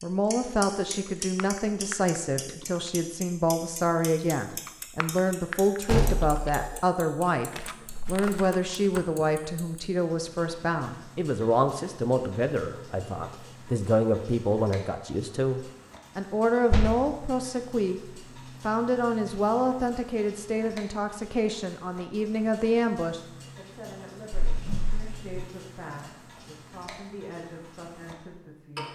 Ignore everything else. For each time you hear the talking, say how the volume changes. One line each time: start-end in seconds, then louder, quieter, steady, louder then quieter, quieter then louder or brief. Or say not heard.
0.0-28.8 quieter.